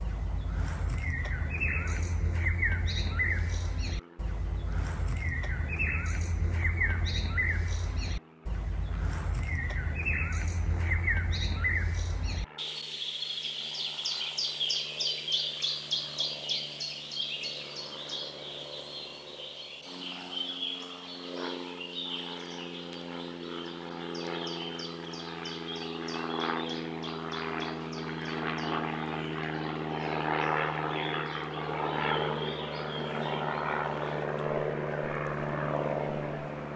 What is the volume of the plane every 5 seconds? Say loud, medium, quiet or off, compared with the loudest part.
quiet, quiet, quiet, quiet, medium, loud, loud, loud.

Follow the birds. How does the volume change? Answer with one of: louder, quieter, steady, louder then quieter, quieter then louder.
quieter.